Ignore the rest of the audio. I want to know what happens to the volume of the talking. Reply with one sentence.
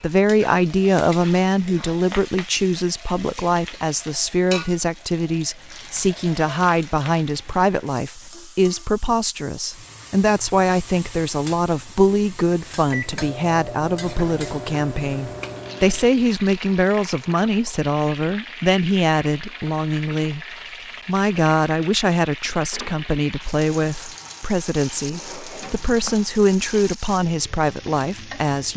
The volume of the talking stays about the same.